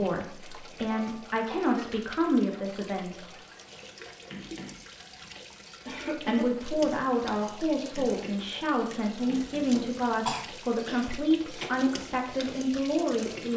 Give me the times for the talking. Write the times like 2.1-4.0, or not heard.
0.0-3.2, 6.2-13.5.